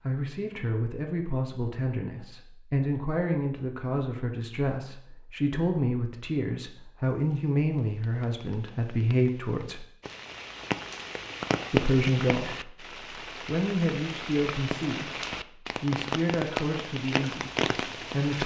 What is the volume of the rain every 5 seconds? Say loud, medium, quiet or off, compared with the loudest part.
off, quiet, loud, loud.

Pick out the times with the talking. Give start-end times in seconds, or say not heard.
0.0-9.8, 11.7-18.4.